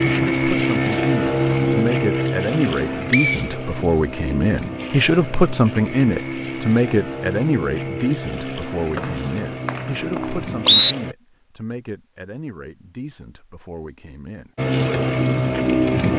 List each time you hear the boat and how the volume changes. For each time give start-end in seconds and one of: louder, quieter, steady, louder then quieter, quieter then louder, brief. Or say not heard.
0.0-11.2 quieter
14.6-16.1 brief.